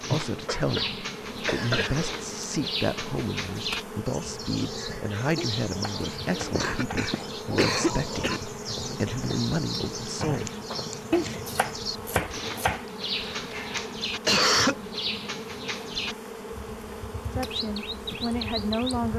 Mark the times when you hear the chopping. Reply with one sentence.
You can hear the chopping from 5.3 to 7.1 s and from 11.1 to 12.8 s.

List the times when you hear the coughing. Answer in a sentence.
The coughing can be heard from 0.5 to 2.1 s, from 6.5 to 8.4 s and from 13.1 to 14.8 s.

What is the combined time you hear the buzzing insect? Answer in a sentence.
You can hear the buzzing insect for 19 seconds altogether.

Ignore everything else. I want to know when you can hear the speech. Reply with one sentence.
You can hear the speech from 0.1 to 10.5 s and from 17.3 to 19.1 s.